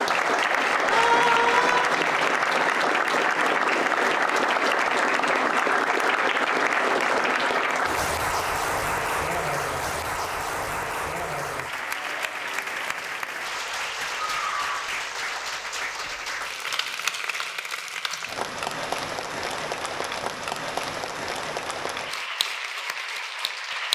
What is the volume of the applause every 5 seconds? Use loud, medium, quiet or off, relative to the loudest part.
loud, loud, medium, medium, medium.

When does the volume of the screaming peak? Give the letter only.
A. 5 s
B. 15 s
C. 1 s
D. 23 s
C.